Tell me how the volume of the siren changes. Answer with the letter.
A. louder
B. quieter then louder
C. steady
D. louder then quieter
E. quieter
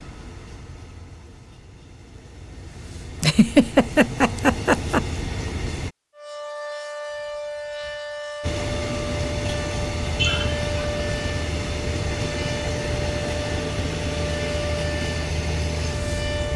C.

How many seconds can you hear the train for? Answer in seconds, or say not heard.
14 s.